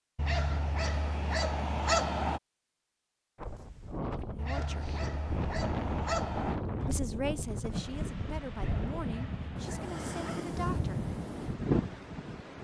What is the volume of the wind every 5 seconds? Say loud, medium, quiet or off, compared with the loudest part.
medium, loud, loud.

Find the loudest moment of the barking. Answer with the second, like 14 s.
2 s.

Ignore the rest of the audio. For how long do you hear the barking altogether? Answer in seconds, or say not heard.
6 s.